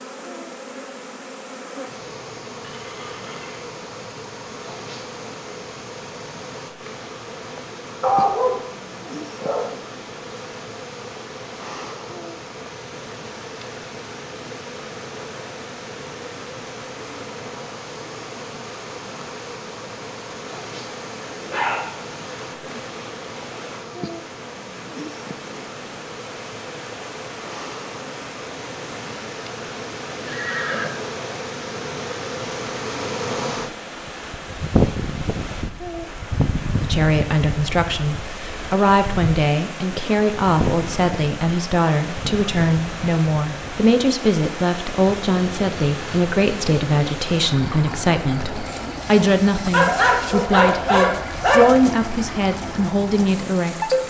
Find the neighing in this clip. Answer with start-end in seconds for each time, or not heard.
2.6-3.6, 30.2-30.9.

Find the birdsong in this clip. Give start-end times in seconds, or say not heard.
not heard.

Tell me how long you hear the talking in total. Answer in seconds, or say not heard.
17 s.